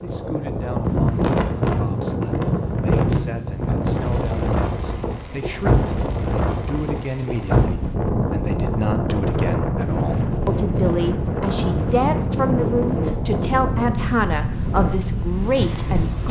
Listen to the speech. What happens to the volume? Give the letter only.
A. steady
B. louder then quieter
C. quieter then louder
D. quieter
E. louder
E.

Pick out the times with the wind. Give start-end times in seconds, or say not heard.
0.0-16.2.